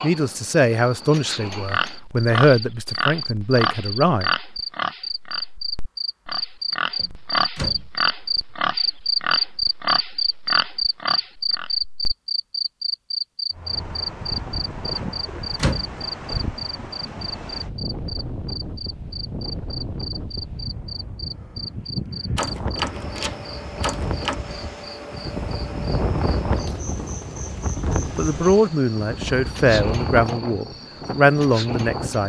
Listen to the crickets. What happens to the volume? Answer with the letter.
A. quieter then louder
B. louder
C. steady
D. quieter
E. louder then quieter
E.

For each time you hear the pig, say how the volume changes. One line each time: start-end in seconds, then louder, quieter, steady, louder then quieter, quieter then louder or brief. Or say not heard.
1.5-12.2 steady.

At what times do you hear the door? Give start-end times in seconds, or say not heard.
7.0-7.9, 15.0-15.9, 22.4-24.4.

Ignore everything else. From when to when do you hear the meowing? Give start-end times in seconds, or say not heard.
not heard.